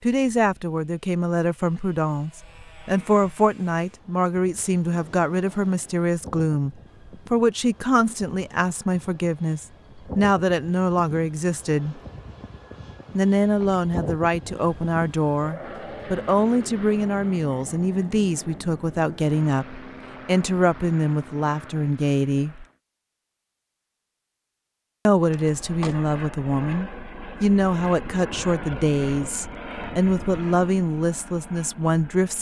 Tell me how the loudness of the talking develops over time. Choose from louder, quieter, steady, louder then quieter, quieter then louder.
steady.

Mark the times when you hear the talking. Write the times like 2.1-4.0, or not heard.
0.0-12.0, 13.2-22.6, 25.1-32.3.